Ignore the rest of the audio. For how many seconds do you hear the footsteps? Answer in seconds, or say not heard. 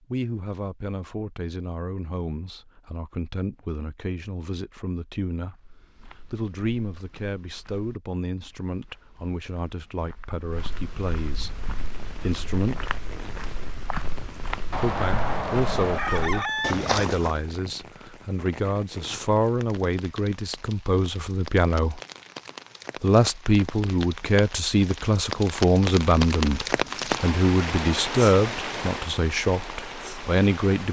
12 s.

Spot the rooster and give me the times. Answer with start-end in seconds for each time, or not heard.
14.7-16.8.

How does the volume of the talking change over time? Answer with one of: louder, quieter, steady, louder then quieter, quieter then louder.
louder.